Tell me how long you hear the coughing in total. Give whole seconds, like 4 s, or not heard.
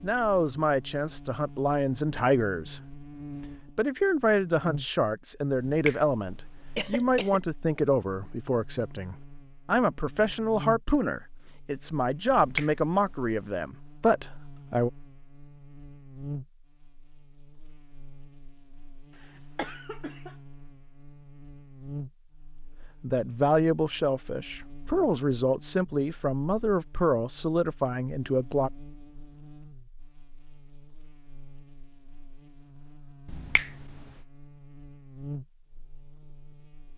2 s.